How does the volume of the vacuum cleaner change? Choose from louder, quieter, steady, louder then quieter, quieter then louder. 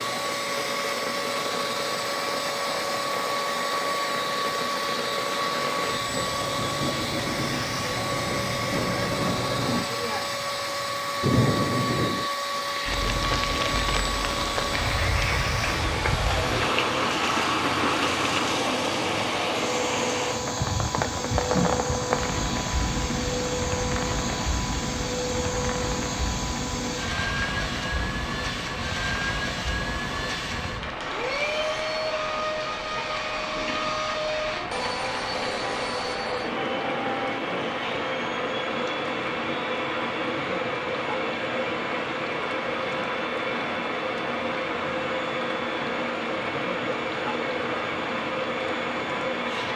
steady.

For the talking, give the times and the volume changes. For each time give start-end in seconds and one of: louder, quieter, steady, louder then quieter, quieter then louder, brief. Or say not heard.
not heard.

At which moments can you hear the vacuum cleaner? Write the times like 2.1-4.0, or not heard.
0.0-49.7.